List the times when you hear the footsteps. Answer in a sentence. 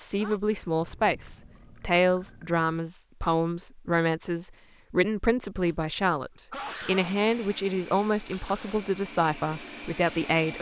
You can't hear the footsteps here.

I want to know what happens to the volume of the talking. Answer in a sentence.
The loudness of the talking stays about the same.